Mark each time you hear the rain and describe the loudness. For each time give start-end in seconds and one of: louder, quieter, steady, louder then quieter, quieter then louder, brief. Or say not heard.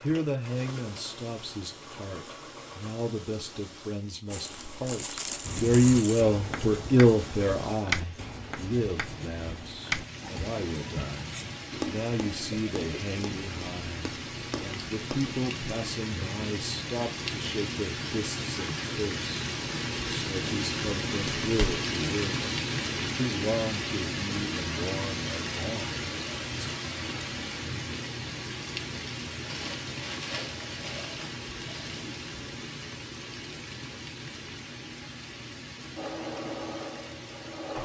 0.0-37.8 louder then quieter.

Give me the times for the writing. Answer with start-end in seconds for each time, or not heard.
5.5-15.3.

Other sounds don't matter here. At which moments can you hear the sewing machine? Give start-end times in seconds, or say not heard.
0.0-3.0, 36.0-37.8.